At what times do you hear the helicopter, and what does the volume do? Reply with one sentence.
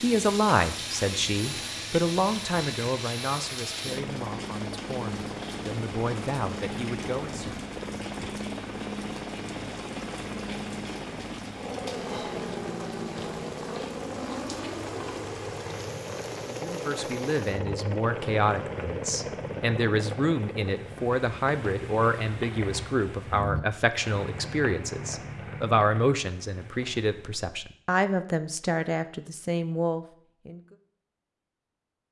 The helicopter can be heard from 0.0 to 21.1 s, at a steady volume.